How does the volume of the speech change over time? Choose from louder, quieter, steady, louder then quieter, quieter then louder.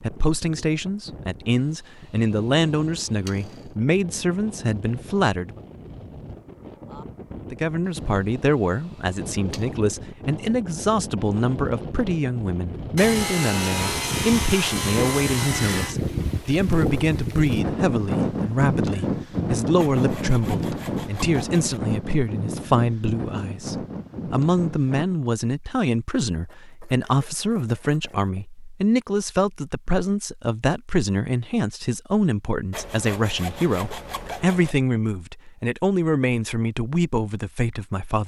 steady.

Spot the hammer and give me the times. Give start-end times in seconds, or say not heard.
not heard.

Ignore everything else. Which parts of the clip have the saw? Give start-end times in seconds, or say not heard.
2.2-3.6, 8.5-9.7, 12.9-15.9, 19.8-21.8, 26.3-28.4, 32.7-34.8.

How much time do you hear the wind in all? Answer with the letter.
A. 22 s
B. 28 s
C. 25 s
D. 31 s
C.